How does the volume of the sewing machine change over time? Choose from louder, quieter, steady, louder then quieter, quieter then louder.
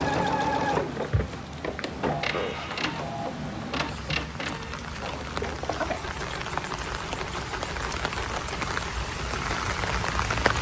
quieter.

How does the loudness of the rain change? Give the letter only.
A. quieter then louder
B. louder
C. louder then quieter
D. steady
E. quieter
B.